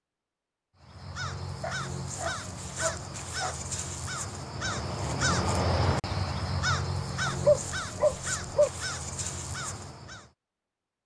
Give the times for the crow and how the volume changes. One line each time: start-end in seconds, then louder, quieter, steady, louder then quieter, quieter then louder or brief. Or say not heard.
0.8-10.3 louder then quieter.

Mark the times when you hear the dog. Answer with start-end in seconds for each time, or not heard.
1.6-3.5, 7.2-8.7.